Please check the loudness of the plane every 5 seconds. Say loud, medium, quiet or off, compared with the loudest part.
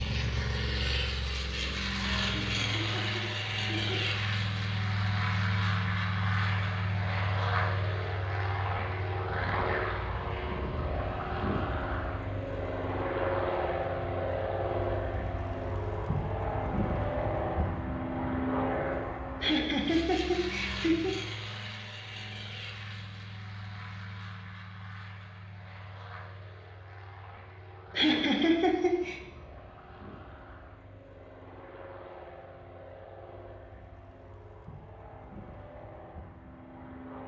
loud, loud, loud, loud, medium, quiet, quiet, quiet.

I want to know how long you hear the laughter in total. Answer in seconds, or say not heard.
5 s.